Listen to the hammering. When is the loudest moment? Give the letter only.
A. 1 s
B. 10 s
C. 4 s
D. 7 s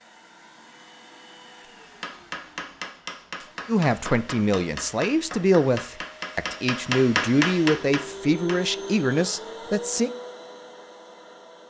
D.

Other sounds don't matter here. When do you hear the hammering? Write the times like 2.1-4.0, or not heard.
1.8-8.6.